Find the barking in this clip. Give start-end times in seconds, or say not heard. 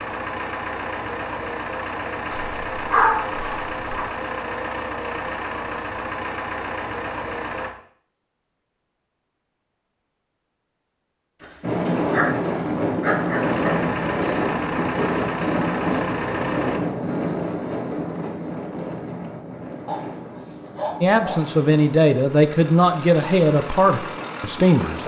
2.3-4.0, 11.4-13.8, 19.9-21.9.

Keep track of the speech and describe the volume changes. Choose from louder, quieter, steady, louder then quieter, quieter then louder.
quieter.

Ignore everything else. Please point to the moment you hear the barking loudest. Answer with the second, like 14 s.
3 s.